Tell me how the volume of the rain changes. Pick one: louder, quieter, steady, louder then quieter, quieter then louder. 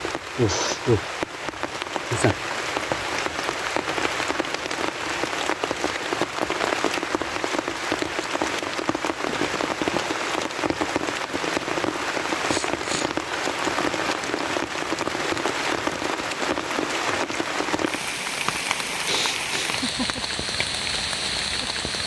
steady.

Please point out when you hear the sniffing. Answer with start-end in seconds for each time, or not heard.
0.5-0.9, 12.4-13.1, 19.1-19.8.